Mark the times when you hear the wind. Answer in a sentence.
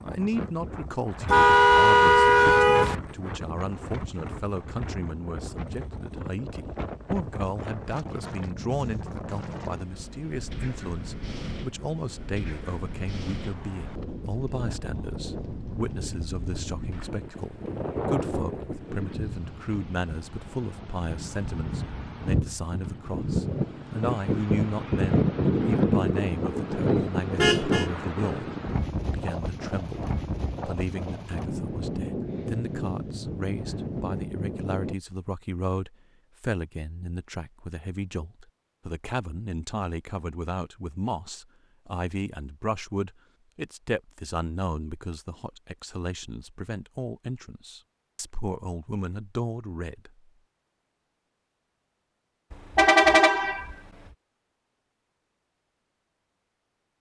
The wind can be heard from 0.0 to 35.0 s.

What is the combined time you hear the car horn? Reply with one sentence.
You can hear the car horn for 4 seconds altogether.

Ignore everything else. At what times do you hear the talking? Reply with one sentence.
The talking can be heard from 0.0 to 28.5 s and from 29.1 to 50.3 s.